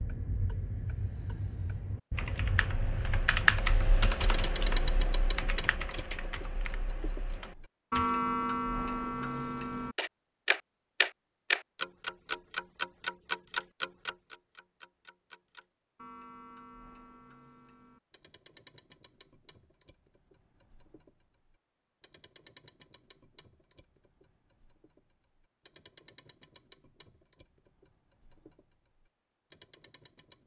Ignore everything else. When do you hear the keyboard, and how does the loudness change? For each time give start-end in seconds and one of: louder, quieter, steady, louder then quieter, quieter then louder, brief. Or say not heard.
2.1-8.1 quieter.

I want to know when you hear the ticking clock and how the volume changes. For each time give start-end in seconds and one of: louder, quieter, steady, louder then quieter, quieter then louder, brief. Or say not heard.
0.0-30.4 louder then quieter.